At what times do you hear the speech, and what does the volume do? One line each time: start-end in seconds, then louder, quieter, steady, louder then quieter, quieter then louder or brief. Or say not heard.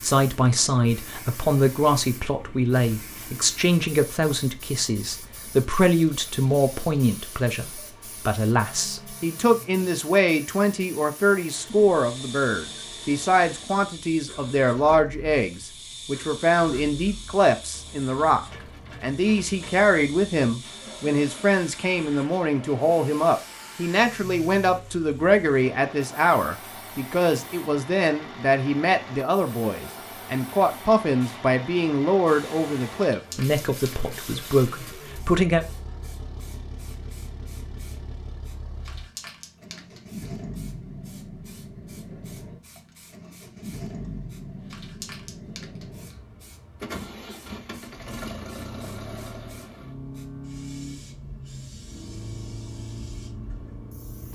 0.0-35.6 steady.